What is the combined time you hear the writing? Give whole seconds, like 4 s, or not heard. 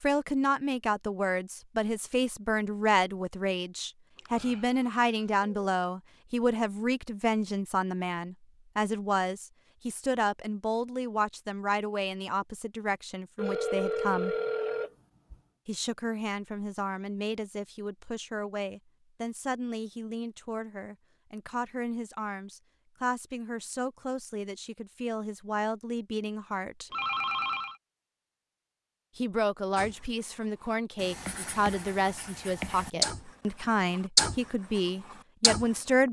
5 s.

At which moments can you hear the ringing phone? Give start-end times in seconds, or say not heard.
4.2-5.5, 13.3-15.3, 26.9-27.8.